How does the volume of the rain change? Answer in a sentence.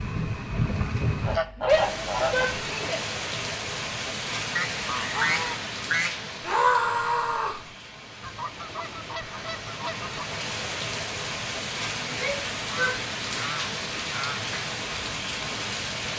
The loudness of the rain goes down, then up.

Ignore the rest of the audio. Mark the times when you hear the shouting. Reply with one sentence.
The shouting can be heard from 1.6 to 3.0 s, from 6.4 to 7.6 s and from 12.1 to 13.0 s.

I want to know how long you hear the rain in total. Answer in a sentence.
The rain can be heard for 16 seconds in total.